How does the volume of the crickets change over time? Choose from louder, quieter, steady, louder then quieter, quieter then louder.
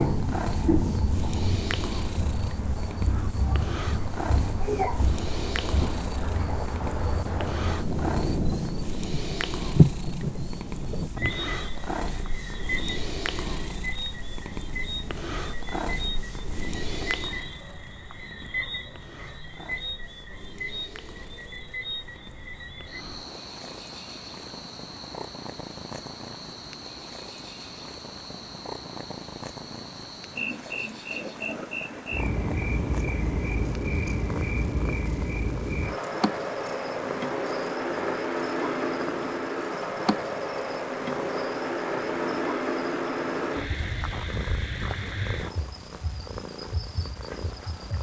quieter then louder.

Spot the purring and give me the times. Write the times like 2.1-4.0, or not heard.
0.0-47.9.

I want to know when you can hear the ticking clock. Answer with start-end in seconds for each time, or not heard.
not heard.